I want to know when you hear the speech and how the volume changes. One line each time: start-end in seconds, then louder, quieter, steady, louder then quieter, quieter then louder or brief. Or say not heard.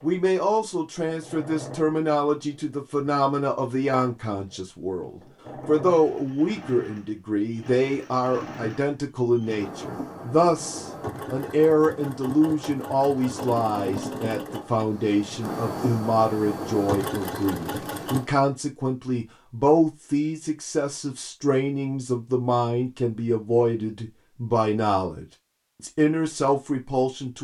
0.0-27.3 steady.